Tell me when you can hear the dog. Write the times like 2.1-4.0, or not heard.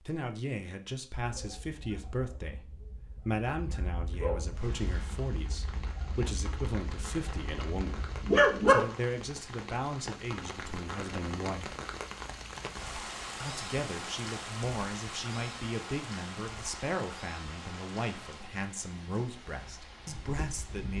1.1-8.8.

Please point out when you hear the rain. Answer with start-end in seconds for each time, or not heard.
4.5-20.9.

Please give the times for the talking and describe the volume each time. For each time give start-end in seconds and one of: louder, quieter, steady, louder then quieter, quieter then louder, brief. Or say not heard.
0.0-11.8 steady
13.4-20.9 steady.